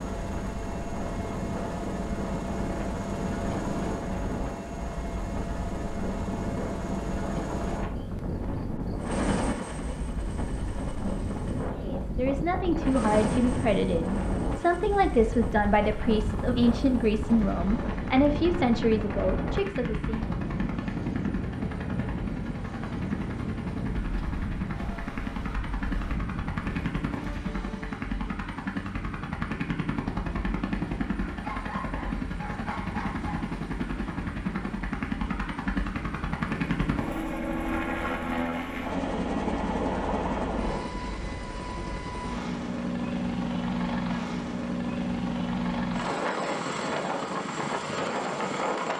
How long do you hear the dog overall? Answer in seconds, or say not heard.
2 s.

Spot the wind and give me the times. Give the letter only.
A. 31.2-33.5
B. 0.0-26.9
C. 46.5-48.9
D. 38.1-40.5
B.